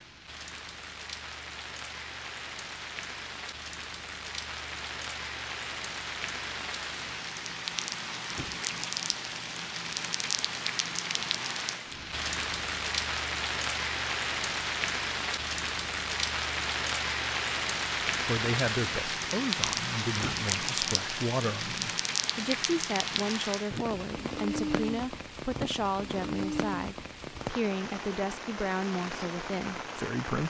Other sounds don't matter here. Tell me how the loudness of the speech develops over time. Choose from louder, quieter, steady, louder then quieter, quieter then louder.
steady.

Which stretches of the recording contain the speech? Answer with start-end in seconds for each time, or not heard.
18.2-30.4.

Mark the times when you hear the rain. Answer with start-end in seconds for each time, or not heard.
0.0-30.4.